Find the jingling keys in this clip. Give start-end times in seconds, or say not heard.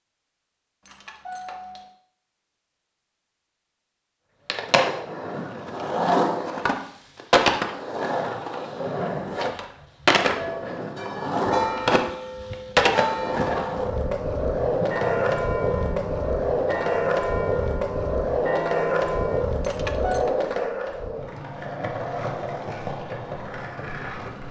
0.8-1.9, 19.6-20.4.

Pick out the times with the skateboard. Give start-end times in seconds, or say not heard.
4.5-24.4.